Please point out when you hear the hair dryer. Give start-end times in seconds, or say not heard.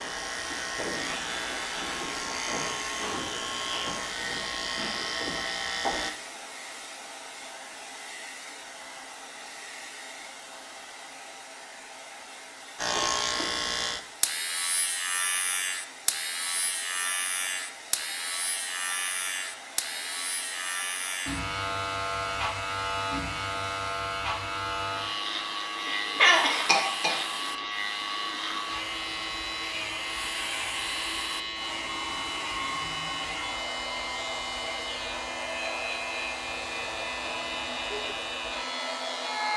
0.0-39.5.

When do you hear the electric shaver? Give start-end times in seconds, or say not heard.
0.0-6.1, 12.8-39.5.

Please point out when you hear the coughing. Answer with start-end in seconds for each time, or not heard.
25.9-27.6.